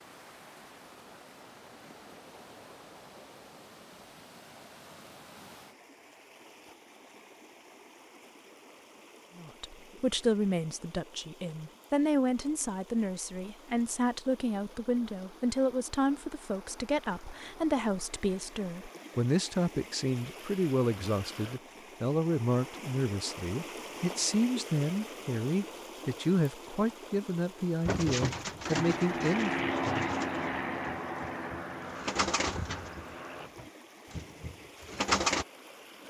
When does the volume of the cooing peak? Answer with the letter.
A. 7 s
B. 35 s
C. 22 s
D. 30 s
B.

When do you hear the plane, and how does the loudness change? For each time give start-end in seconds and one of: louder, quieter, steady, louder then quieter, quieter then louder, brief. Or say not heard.
28.6-33.5 quieter.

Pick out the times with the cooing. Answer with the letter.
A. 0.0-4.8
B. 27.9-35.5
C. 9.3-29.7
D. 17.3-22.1
B.